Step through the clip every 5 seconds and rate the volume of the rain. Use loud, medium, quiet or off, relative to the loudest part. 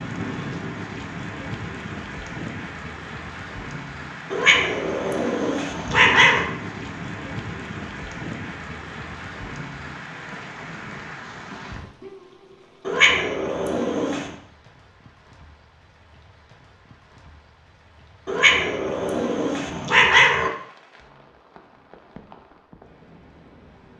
loud, loud, medium, quiet, quiet.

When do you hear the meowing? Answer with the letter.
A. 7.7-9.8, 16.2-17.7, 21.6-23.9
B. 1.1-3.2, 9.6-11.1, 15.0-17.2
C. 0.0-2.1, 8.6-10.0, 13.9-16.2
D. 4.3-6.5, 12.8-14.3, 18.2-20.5
D.